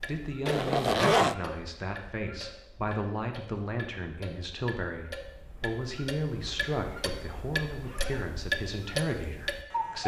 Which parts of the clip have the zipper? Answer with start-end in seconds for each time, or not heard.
0.5-1.4, 6.3-8.3.